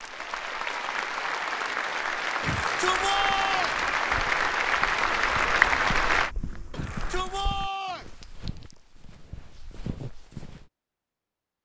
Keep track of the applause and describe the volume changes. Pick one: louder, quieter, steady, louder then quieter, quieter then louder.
louder.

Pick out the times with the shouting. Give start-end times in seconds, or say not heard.
2.4-3.8, 6.7-8.1.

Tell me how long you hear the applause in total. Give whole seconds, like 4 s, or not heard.
6 s.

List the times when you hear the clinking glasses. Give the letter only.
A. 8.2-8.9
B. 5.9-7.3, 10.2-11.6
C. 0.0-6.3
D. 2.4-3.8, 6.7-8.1
A.